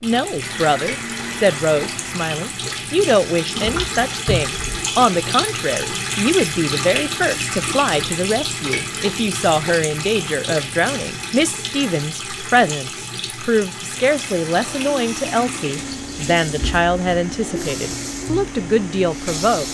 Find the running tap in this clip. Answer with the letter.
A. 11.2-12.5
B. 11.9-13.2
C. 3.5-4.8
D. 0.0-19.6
D.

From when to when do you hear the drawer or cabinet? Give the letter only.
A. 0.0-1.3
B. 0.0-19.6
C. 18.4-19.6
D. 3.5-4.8
D.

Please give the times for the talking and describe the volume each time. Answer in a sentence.
You can hear the talking from 0.0 to 19.6 s, at a steady volume.